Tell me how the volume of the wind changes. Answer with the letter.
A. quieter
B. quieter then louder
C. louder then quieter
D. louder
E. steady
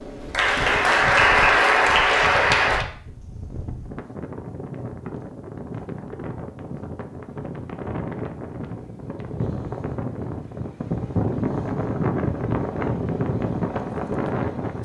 D.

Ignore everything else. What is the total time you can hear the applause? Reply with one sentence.
The applause can be heard for 3 seconds in total.